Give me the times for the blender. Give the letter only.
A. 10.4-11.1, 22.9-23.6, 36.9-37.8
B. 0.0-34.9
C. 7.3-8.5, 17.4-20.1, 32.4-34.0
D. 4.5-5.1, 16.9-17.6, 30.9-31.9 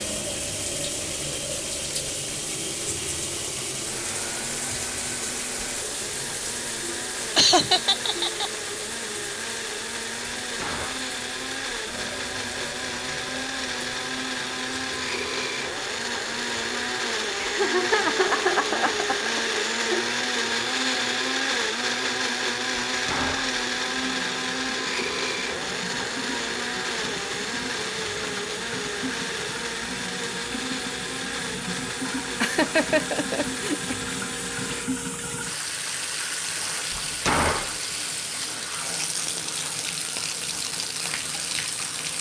B.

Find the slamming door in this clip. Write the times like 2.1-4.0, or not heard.
10.4-11.1, 22.9-23.6, 36.9-37.8.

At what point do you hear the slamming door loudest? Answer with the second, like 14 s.
37 s.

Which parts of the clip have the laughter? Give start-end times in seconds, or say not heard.
7.3-8.5, 17.4-20.1, 32.4-34.0.